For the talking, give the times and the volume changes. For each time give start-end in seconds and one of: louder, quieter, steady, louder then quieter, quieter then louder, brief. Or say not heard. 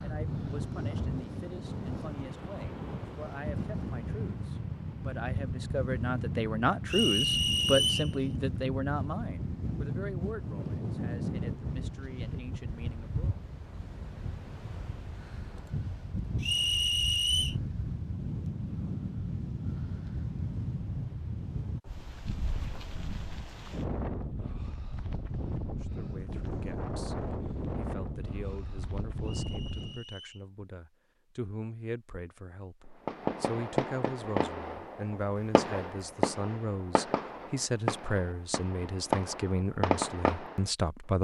0.0-13.4 louder then quieter
25.7-41.2 louder.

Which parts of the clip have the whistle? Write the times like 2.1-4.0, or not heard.
6.8-8.1, 16.4-17.6, 29.2-30.4.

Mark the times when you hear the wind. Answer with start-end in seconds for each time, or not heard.
0.0-30.0.